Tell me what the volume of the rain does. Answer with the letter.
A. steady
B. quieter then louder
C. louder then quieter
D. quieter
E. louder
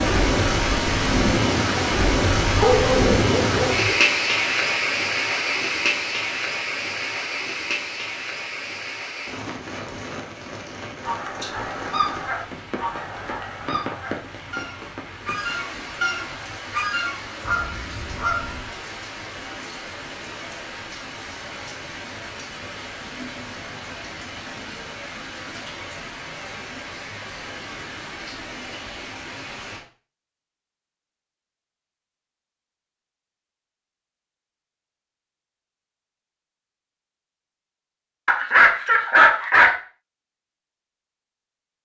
D.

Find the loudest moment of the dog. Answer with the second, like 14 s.
39 s.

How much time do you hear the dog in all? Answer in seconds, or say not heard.
3 s.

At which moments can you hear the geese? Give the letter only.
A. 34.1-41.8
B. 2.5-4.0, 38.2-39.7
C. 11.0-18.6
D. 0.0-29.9
C.